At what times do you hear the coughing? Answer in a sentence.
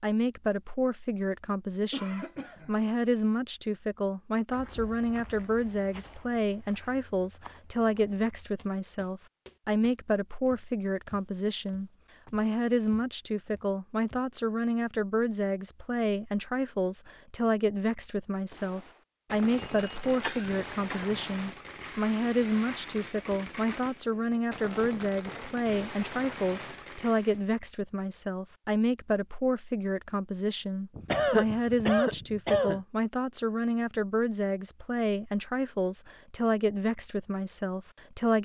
The coughing can be heard from 1.9 to 2.8 s, from 19.5 to 21.2 s and from 30.9 to 32.8 s.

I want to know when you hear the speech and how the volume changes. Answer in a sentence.
The speech can be heard from 0.0 to 38.4 s, at a steady volume.